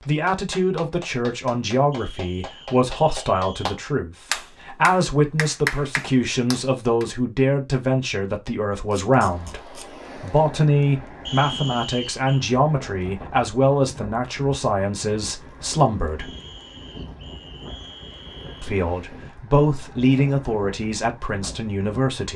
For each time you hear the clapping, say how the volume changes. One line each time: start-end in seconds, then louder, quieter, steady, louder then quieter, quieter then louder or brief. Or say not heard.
0.0-7.0 louder.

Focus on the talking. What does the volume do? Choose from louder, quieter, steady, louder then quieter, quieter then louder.
steady.